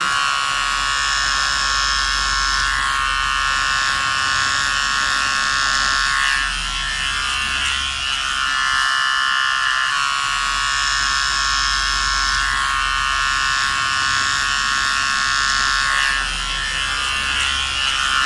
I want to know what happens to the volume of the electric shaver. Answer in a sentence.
The volume of the electric shaver stays about the same.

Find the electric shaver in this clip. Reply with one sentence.
You can hear the electric shaver from 0.0 to 18.2 s.